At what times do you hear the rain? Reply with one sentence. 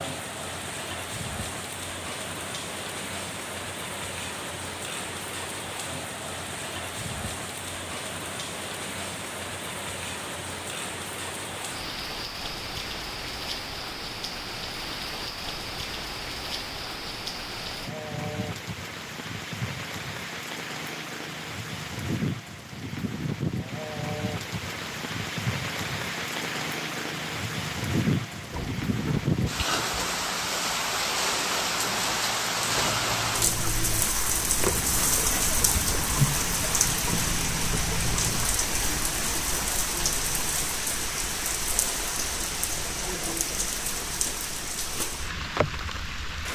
The rain can be heard from 0.0 to 46.5 s.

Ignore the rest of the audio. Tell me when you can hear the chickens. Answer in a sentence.
You can hear the chickens from 28.5 to 38.5 s.